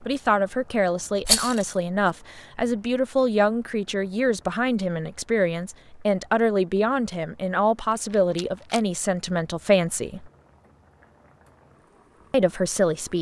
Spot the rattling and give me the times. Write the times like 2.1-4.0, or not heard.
1.2-2.1, 7.9-8.8.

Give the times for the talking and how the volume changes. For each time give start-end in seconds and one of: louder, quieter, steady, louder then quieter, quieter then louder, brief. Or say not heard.
0.0-10.3 steady
12.3-13.1 brief.